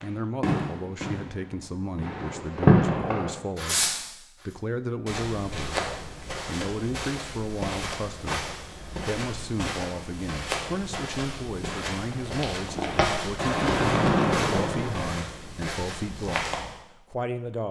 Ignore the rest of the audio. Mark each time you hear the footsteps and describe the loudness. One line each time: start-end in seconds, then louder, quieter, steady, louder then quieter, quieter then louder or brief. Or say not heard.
5.0-16.9 steady.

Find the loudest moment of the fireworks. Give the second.
3 s.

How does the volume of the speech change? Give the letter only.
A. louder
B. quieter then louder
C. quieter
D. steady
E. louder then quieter
D.